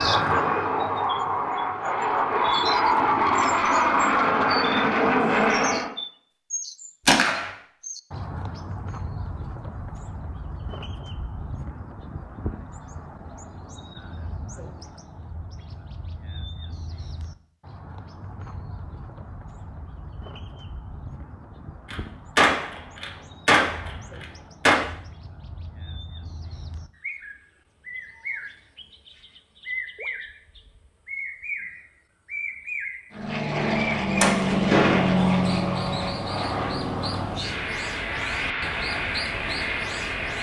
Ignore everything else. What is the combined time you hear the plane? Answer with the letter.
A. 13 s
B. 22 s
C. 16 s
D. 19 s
A.